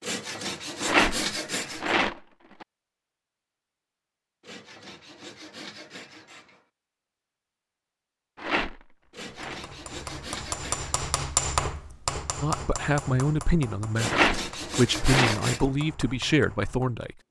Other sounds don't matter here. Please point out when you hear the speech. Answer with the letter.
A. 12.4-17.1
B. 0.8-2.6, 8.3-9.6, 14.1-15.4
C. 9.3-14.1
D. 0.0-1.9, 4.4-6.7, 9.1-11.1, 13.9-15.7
A.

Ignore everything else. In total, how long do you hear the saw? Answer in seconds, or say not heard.
8 s.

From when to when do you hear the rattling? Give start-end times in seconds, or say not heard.
0.8-2.6, 8.3-9.6, 14.1-15.4.